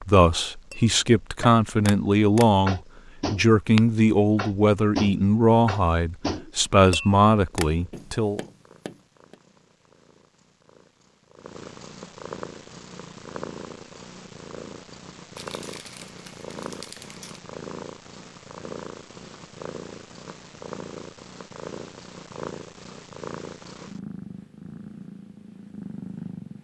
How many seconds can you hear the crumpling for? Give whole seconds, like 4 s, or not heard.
2 s.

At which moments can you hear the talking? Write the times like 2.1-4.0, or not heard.
0.0-8.4.